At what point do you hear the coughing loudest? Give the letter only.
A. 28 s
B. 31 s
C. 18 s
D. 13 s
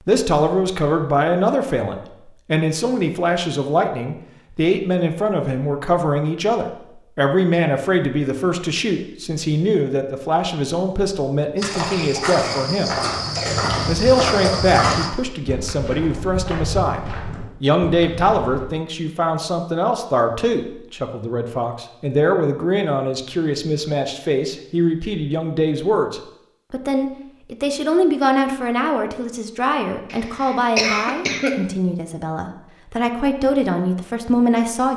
B.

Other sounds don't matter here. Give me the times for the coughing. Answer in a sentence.
The coughing can be heard from 11.7 to 13.7 s and from 30.1 to 31.6 s.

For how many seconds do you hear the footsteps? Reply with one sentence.
The footsteps can be heard for 7 seconds in total.